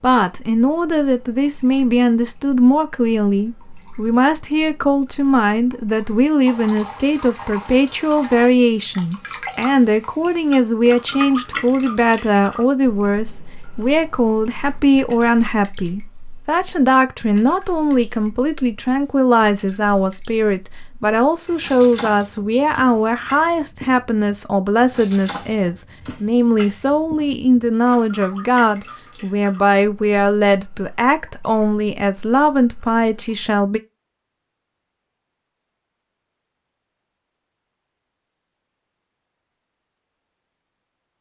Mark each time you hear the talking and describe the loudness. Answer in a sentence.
You can hear the talking from 0.0 to 33.8 s, at a steady volume.